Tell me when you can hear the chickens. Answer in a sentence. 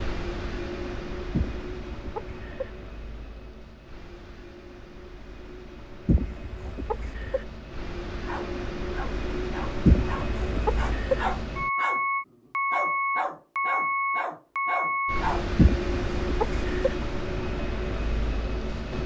The chickens can be heard from 1.3 to 2.7 s, from 6.0 to 7.5 s, from 9.8 to 11.2 s and from 15.6 to 16.9 s.